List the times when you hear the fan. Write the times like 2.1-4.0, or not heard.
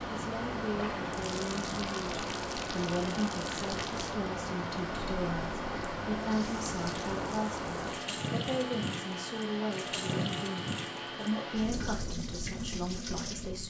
0.0-13.6.